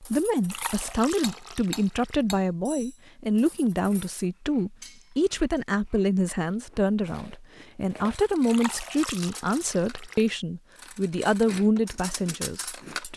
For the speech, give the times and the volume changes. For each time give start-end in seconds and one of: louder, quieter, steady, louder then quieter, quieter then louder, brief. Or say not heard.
0.0-13.1 steady.